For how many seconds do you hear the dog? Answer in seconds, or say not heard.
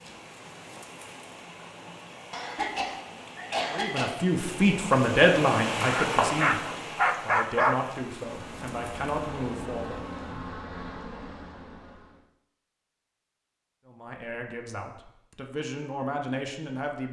2 s.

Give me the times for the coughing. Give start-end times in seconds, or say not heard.
2.3-4.1.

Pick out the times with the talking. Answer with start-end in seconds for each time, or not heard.
3.6-10.1, 13.8-17.0.